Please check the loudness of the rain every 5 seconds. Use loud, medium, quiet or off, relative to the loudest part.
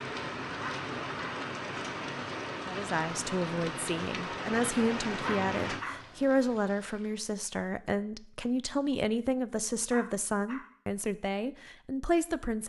loud, loud, off.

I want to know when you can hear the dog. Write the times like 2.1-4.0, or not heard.
0.6-1.4, 5.2-6.0, 9.9-10.7.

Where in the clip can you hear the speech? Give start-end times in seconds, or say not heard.
2.6-12.6.